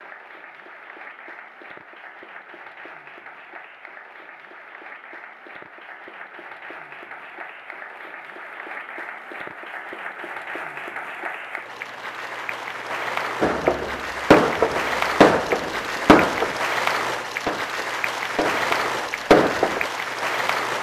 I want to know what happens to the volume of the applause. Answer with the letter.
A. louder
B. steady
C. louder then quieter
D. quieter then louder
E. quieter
A.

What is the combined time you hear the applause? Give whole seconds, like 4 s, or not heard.
21 s.